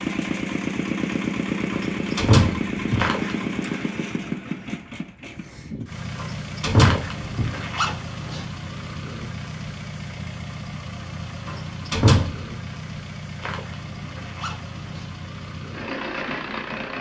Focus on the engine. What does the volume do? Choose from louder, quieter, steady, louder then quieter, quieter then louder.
quieter.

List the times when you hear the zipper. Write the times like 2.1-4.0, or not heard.
3.0-3.9, 6.8-8.4, 13.3-15.1.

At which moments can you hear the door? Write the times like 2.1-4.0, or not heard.
1.7-3.1, 6.2-7.6, 11.4-12.4.